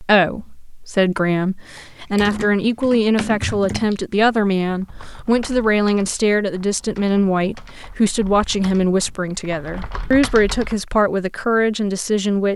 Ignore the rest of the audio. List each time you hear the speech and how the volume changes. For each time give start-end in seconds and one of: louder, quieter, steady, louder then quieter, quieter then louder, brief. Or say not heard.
0.0-12.5 steady.